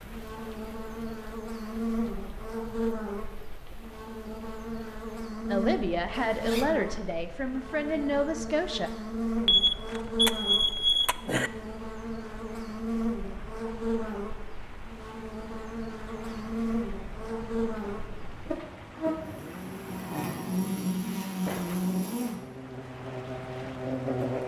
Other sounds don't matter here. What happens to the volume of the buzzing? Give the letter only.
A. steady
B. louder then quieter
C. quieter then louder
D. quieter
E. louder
A.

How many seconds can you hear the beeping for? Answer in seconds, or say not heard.
2 s.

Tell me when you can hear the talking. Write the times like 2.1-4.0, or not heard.
5.5-8.9.